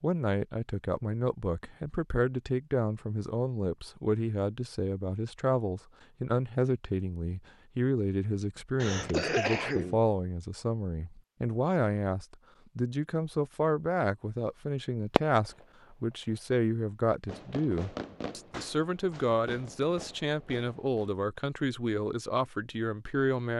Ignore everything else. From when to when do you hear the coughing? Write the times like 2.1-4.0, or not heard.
8.8-10.0.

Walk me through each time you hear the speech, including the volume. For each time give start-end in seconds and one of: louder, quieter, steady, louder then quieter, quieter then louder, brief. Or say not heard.
0.0-23.5 steady.